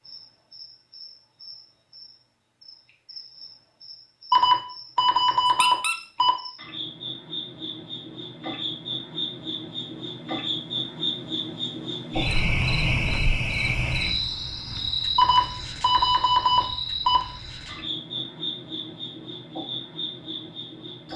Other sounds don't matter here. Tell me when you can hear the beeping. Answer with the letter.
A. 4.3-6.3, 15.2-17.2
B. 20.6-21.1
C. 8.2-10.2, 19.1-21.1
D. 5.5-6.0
A.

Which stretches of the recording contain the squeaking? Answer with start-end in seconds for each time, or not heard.
5.5-6.0.